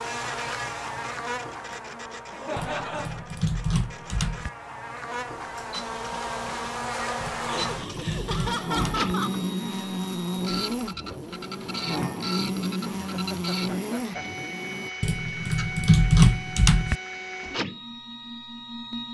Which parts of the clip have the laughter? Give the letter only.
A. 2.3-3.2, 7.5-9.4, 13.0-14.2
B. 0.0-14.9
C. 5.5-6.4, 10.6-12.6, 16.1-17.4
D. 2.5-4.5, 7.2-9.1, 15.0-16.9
A.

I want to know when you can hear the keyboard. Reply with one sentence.
You can hear the keyboard from 2.5 to 4.5 s, from 7.2 to 9.1 s and from 15.0 to 16.9 s.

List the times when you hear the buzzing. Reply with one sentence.
You can hear the buzzing from 0.0 to 14.9 s.